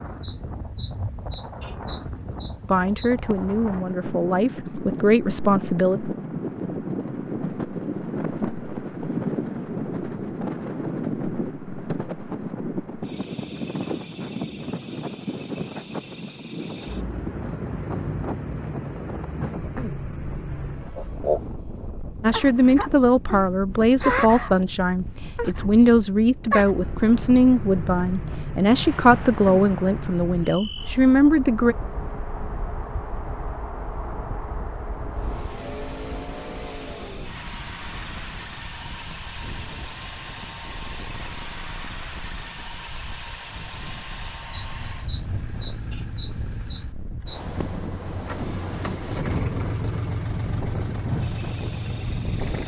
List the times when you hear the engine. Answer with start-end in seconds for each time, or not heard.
35.1-52.6.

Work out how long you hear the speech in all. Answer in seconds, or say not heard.
13 s.